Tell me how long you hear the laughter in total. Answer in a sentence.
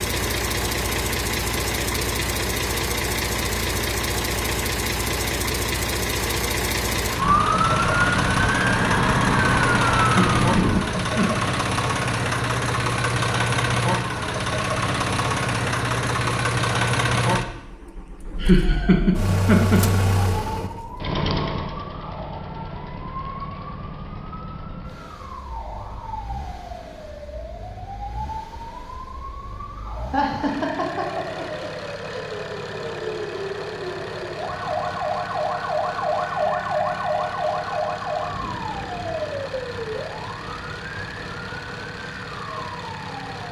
You can hear the laughter for 5 seconds altogether.